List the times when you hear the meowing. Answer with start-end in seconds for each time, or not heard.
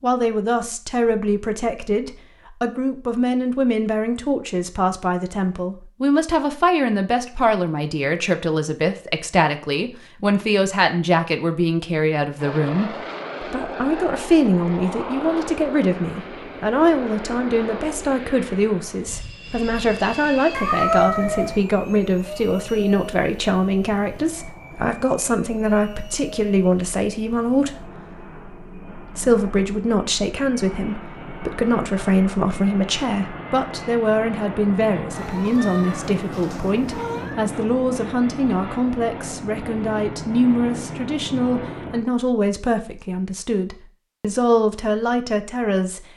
20.5-21.6, 35.1-37.4.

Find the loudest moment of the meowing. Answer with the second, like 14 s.
21 s.